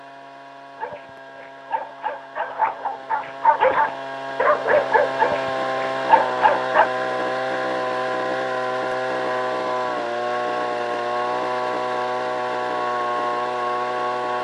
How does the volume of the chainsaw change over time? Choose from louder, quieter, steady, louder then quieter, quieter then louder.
louder.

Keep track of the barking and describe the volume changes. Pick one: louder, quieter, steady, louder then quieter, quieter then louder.
louder.